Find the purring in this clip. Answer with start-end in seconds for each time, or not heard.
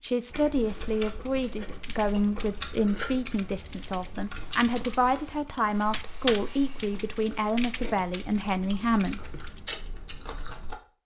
not heard.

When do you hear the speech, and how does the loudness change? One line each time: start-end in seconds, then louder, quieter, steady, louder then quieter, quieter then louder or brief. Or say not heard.
0.0-9.2 steady.